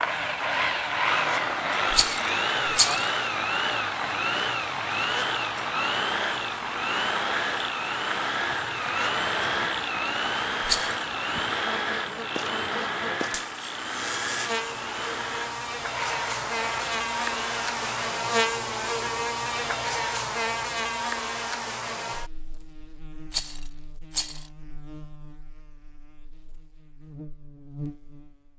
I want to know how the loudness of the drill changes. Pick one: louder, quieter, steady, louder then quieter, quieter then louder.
quieter.